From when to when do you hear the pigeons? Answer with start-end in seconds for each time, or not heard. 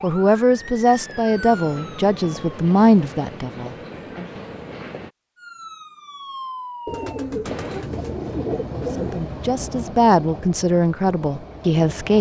6.8-9.2.